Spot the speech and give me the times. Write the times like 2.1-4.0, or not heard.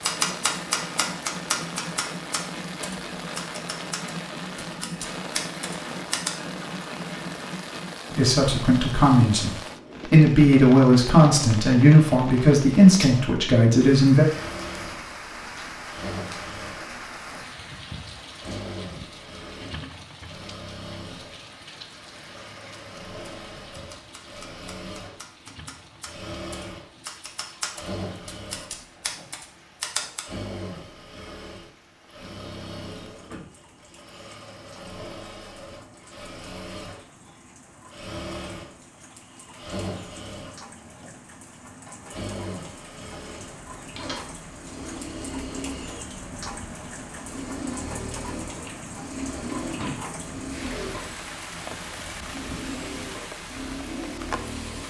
8.1-14.2.